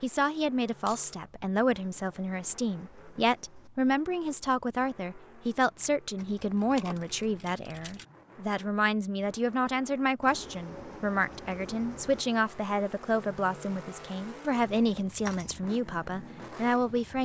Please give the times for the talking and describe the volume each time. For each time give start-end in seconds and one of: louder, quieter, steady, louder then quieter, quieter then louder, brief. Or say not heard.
0.0-17.1 steady.